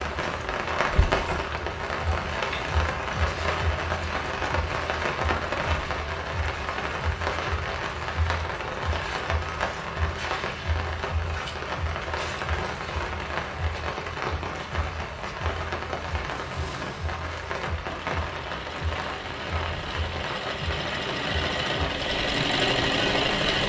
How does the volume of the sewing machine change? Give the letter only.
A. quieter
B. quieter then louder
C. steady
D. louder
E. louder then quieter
D.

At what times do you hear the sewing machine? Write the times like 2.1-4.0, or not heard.
16.3-23.6.